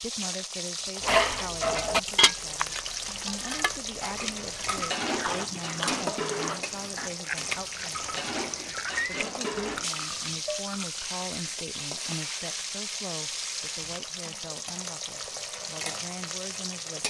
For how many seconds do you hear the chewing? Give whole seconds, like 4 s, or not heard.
10 s.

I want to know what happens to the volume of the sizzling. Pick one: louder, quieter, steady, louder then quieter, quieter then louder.
steady.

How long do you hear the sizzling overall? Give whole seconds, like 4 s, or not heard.
17 s.